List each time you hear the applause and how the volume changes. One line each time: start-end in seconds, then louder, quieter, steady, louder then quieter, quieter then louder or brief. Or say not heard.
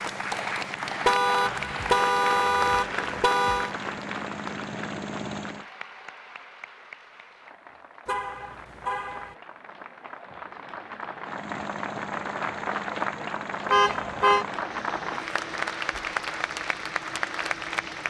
0.0-18.0 quieter then louder.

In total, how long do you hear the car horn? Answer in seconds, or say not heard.
5 s.